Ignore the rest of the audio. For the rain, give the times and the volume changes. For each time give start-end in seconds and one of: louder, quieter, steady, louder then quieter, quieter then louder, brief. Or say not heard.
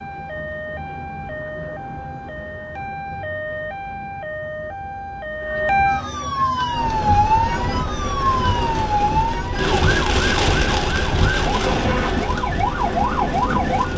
6.7-13.9 louder then quieter.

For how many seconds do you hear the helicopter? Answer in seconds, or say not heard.
not heard.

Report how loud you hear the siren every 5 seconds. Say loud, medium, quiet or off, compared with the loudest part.
medium, loud, loud.